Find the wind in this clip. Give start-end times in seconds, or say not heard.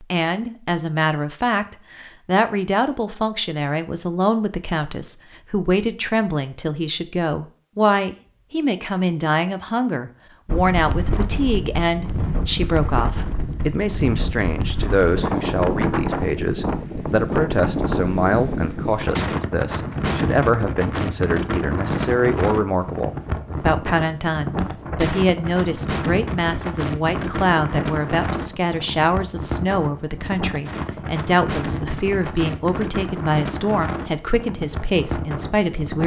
10.4-36.0.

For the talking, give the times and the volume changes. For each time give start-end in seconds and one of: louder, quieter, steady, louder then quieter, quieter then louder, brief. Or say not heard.
0.0-36.0 steady.